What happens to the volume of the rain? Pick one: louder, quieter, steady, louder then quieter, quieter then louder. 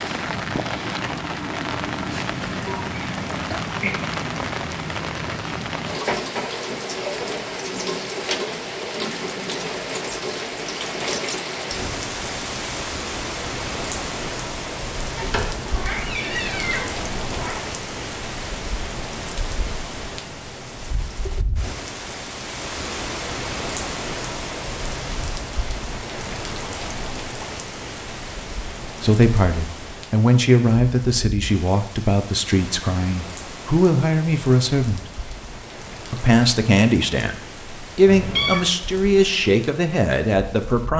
quieter.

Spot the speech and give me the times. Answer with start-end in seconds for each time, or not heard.
29.0-35.0, 36.1-40.9.